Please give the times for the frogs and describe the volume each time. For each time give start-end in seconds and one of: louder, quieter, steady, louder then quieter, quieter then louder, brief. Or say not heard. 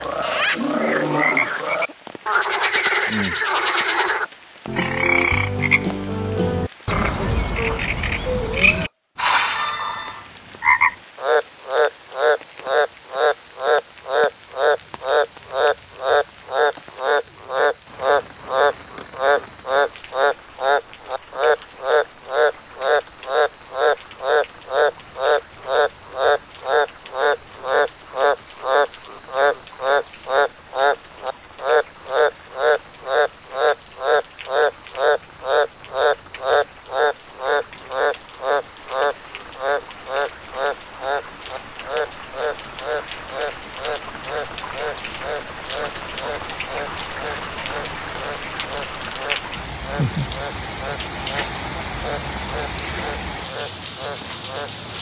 0.0-54.7 quieter.